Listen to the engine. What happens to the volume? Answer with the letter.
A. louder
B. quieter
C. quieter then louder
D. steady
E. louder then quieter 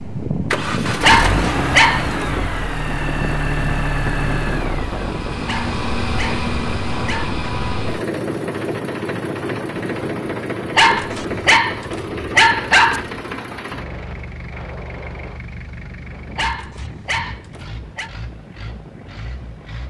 B.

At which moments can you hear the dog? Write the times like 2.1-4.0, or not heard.
1.0-2.4, 5.5-7.4, 10.8-13.1, 16.4-18.1.